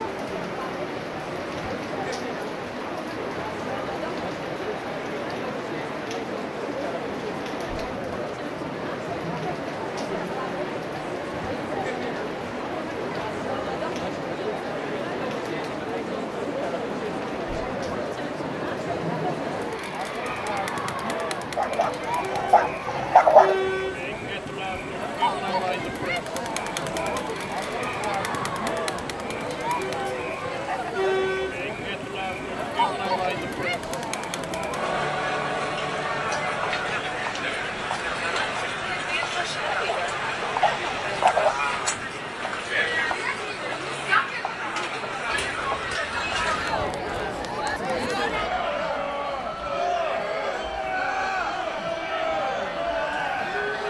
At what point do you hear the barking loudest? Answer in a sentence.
The volume of the barking peaks at 23 seconds.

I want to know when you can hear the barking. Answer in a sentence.
The barking can be heard from 21.6 to 23.6 s and from 39.6 to 41.5 s.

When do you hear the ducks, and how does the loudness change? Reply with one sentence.
You can't hear the ducks here.